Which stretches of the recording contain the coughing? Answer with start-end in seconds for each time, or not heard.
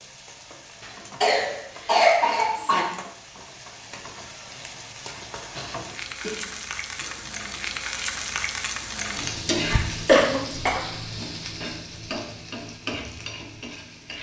0.8-2.9, 5.5-7.3, 10.1-10.8.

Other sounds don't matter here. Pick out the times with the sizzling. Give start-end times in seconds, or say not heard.
0.0-14.1.